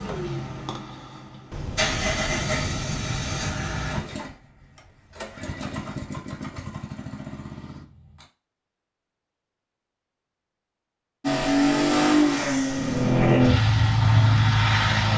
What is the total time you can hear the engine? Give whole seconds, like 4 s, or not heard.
12 s.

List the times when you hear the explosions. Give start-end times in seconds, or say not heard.
1.5-3.5.